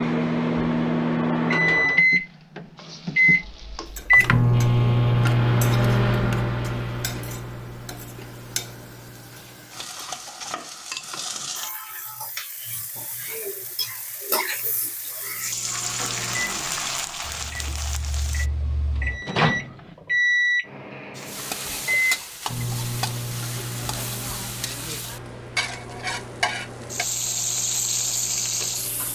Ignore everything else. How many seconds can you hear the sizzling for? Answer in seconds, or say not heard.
24 s.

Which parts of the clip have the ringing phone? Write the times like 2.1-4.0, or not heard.
not heard.